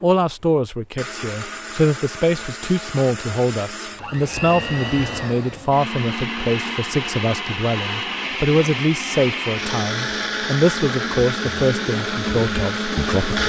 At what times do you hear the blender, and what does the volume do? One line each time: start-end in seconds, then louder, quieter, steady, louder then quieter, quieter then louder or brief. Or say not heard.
0.0-13.4 louder.